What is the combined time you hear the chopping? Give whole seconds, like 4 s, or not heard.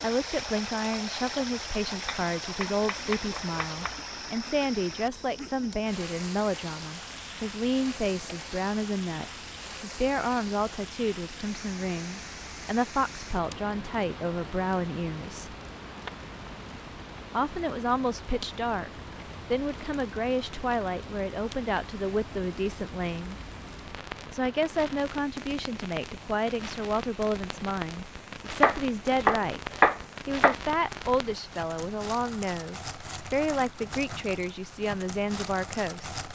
4 s.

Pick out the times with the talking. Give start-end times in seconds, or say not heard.
0.0-15.6, 17.3-23.4, 24.3-29.6, 30.2-36.1.